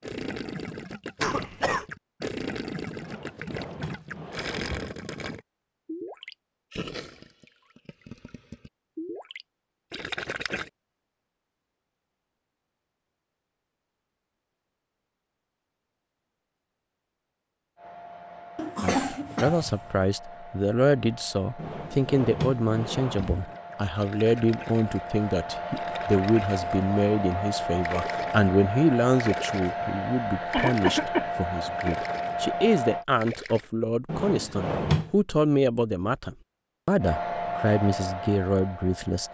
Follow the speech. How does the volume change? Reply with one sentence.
The loudness of the speech stays about the same.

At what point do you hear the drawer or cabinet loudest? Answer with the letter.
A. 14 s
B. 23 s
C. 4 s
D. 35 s
D.